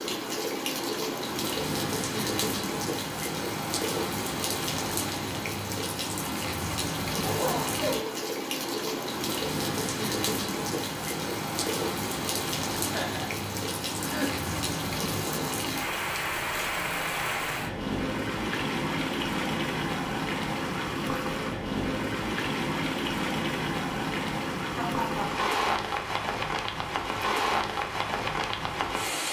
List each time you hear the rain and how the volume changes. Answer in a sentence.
The rain can be heard from 0.0 to 29.2 s, at a steady volume.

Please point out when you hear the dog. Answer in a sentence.
You can't hear the dog here.